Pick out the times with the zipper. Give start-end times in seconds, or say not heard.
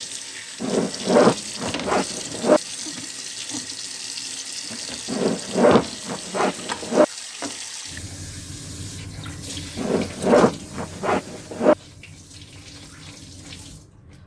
0.6-2.6, 5.0-7.0, 9.8-11.8.